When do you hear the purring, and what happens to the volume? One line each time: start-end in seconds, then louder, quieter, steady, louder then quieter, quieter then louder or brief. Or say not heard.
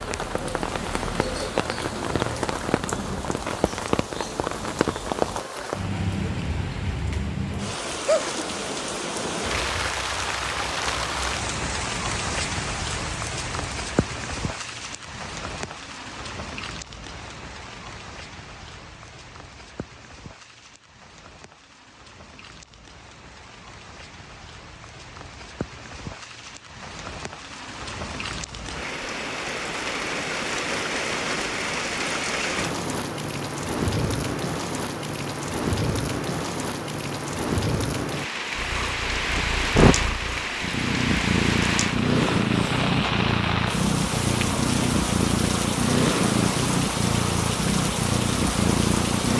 38.5-49.3 steady.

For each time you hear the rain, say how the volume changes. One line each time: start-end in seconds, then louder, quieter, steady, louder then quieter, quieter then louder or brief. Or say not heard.
0.0-49.3 quieter then louder.